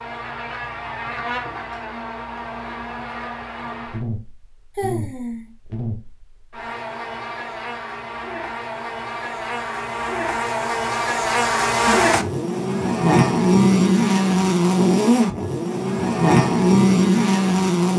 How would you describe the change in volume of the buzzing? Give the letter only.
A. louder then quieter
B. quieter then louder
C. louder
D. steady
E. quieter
C.